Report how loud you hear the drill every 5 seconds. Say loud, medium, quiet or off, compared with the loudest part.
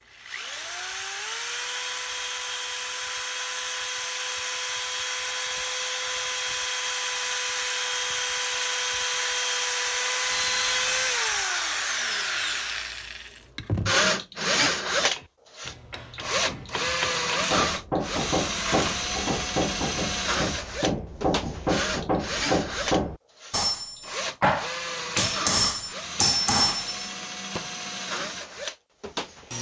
medium, loud, loud, loud, medium, medium.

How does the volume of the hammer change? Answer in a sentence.
The loudness of the hammer goes up.